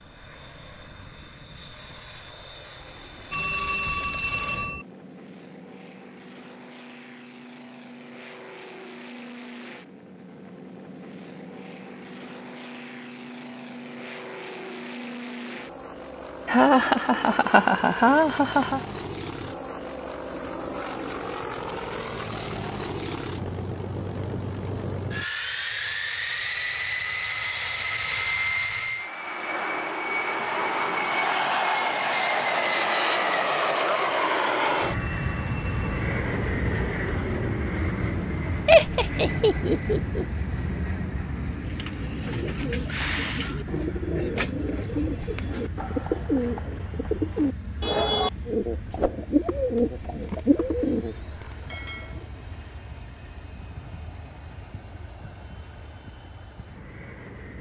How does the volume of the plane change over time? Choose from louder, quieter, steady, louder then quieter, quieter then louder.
louder then quieter.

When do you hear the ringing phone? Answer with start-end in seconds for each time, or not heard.
3.3-4.8, 34.8-36.1.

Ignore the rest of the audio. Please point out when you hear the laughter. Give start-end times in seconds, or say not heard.
16.4-18.8, 38.6-40.2.